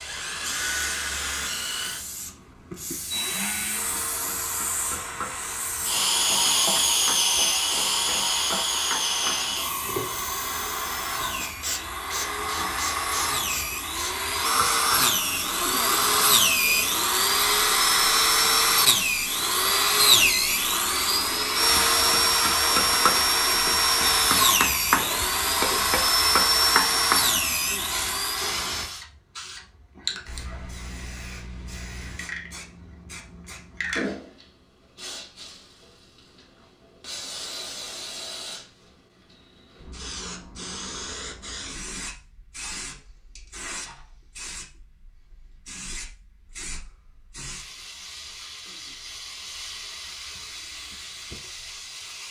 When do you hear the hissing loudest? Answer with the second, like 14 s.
7 s.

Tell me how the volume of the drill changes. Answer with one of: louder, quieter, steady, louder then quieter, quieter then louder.
louder.